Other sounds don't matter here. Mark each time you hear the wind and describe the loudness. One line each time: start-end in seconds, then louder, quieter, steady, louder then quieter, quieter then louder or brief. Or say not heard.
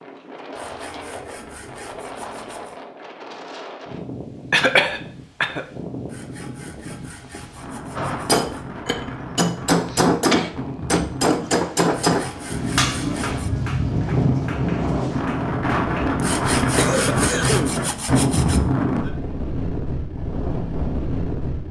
0.0-21.6 louder.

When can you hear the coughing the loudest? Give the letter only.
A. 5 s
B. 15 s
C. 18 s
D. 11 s
A.